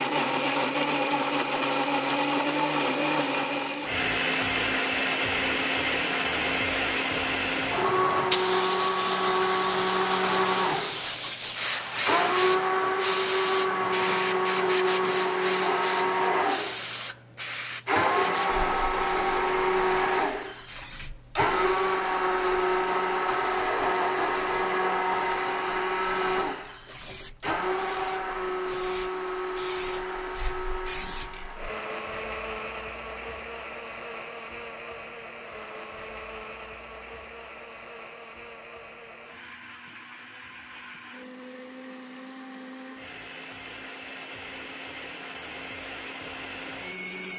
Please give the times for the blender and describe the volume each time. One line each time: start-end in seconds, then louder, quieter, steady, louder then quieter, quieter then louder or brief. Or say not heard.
0.0-47.3 quieter.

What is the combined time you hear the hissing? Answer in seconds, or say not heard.
32 s.